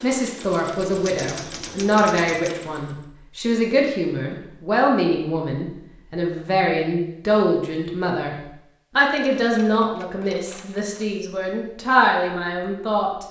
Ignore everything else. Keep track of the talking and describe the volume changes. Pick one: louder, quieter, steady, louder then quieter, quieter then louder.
steady.